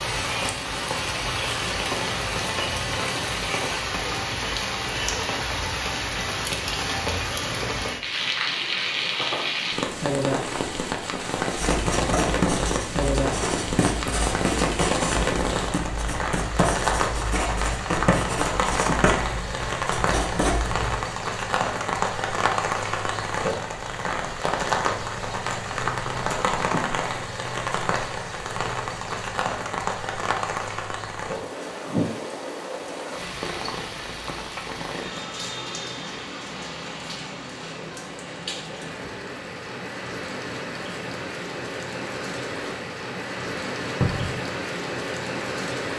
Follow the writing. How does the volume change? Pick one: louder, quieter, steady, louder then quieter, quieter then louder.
steady.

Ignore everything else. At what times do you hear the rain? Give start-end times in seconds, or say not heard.
0.0-45.9.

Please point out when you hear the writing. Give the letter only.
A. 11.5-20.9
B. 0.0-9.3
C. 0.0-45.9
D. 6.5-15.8
A.